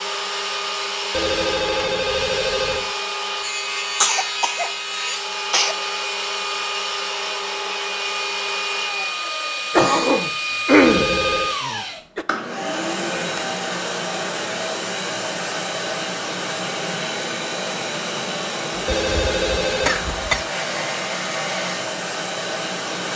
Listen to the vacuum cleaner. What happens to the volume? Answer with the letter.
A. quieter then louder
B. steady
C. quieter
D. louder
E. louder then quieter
B.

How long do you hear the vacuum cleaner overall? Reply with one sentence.
The vacuum cleaner can be heard for 23 seconds in total.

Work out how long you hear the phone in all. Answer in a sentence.
The phone can be heard for 4 seconds in total.